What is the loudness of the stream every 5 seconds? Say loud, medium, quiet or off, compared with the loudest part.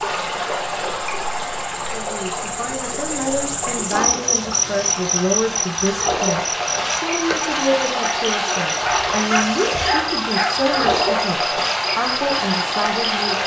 medium, loud, loud.